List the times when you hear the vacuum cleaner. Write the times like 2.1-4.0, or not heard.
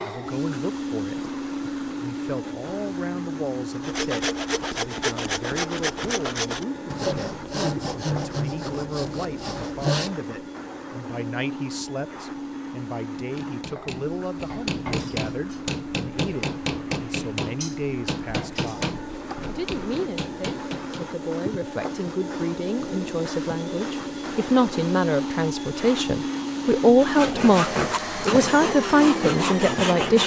0.0-30.2.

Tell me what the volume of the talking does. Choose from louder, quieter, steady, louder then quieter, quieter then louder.
louder.